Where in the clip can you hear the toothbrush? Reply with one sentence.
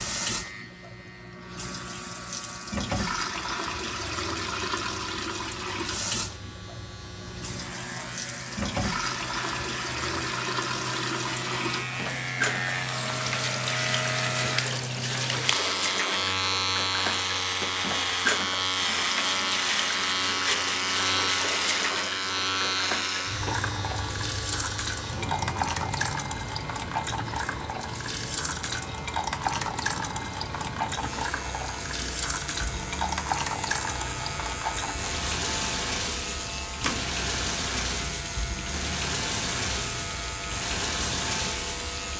The toothbrush can't be heard in this clip.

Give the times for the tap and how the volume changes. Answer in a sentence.
You can hear the tap from 0.0 to 42.1 s, at a steady volume.